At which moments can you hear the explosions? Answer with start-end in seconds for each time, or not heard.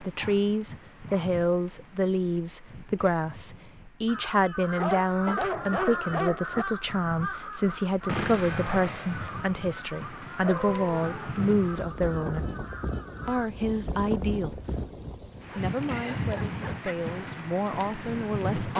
8.1-9.4.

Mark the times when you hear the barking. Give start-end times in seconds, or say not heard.
0.1-1.4, 4.8-6.7, 10.4-11.3, 15.5-16.9.